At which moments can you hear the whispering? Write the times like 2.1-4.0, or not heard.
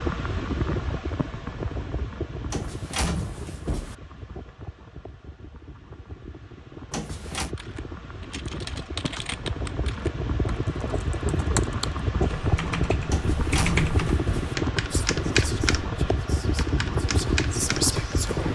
14.8-18.5.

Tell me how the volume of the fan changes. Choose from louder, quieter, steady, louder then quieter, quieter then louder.
quieter then louder.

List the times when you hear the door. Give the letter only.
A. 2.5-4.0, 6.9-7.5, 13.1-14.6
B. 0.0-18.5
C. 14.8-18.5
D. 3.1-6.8
A.